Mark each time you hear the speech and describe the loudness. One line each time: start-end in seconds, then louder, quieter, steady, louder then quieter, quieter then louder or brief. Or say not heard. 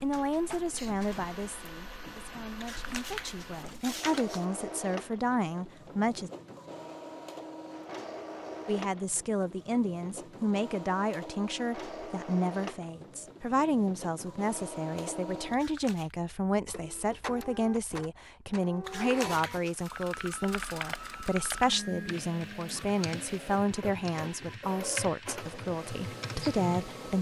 0.0-6.3 quieter then louder
8.7-27.1 steady.